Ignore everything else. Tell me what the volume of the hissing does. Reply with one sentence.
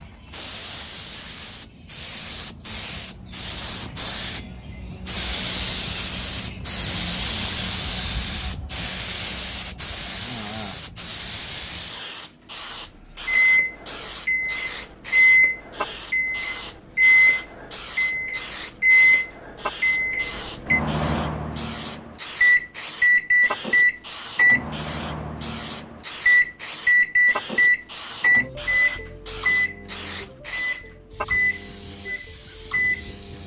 The volume of the hissing stays about the same.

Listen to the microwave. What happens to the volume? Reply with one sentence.
The volume of the microwave goes down.